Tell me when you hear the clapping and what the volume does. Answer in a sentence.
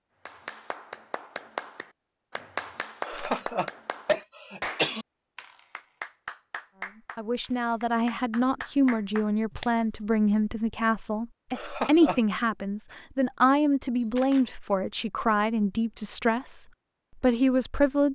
You can hear the clapping from 0.2 to 9.8 s, at a steady volume.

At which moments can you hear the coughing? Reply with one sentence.
You can hear the coughing from 3.0 to 5.0 s and from 11.6 to 12.2 s.